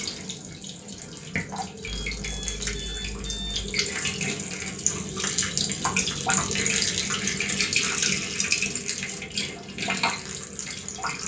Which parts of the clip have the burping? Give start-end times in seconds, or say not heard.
not heard.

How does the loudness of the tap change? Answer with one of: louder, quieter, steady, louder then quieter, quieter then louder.
louder then quieter.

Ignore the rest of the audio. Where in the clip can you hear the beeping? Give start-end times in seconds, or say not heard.
1.9-3.8.